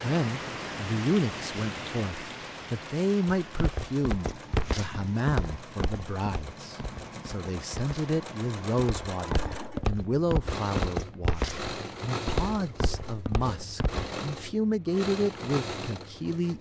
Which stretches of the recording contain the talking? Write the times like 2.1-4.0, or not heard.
0.0-16.5.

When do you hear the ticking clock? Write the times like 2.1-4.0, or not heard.
not heard.